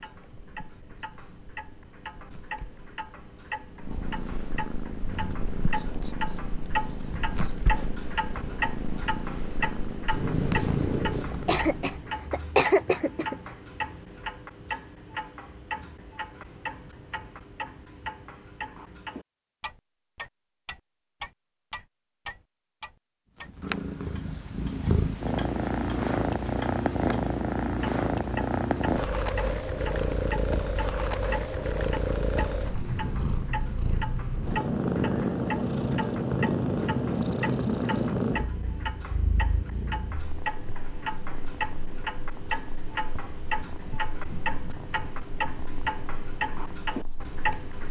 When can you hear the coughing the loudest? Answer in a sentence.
The volume of the coughing peaks at 13 seconds.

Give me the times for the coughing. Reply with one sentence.
The coughing can be heard from 11.3 to 13.3 s.